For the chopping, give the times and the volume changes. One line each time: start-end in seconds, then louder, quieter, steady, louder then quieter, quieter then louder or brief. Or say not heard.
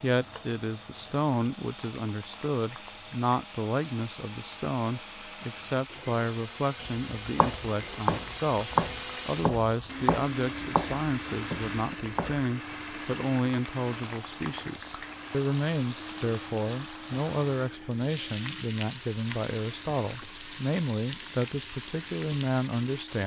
6.8-12.4 quieter.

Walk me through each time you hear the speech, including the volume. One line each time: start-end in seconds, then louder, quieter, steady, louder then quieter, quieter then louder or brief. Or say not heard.
0.0-23.2 steady.